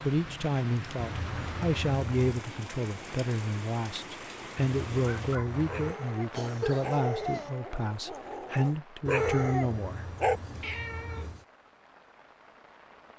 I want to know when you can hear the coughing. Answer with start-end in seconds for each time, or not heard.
6.3-7.5.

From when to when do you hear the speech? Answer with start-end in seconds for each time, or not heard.
0.0-10.1.